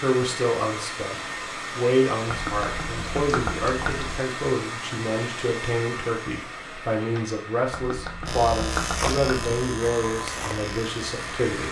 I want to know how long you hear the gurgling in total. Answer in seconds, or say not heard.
4 s.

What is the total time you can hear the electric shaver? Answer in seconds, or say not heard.
3 s.